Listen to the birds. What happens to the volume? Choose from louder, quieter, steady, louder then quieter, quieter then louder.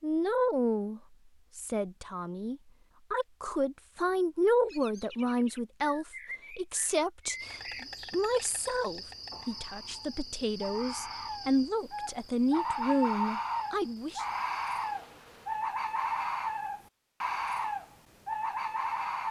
louder.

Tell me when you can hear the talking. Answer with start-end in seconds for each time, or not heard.
0.0-14.2.